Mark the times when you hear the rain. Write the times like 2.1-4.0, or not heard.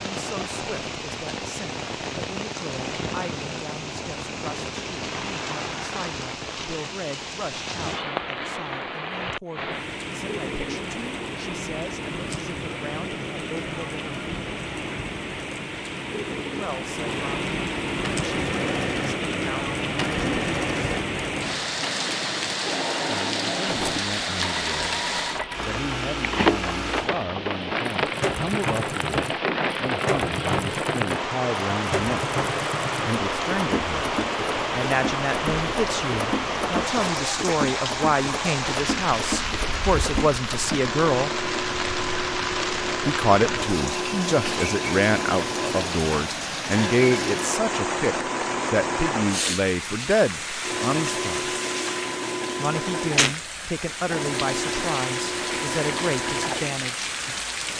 0.0-57.7.